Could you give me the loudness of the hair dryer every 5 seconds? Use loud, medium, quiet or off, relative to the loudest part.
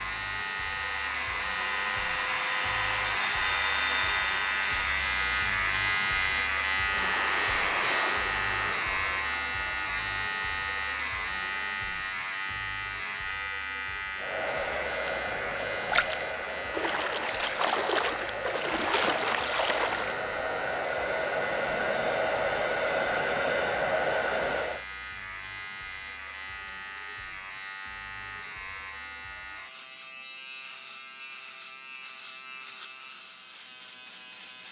medium, medium, medium, medium, loud, off, off.